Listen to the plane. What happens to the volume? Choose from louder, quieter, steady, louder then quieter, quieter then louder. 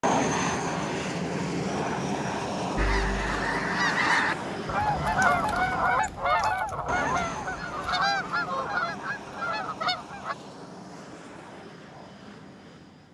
quieter.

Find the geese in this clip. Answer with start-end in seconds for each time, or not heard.
2.8-10.3.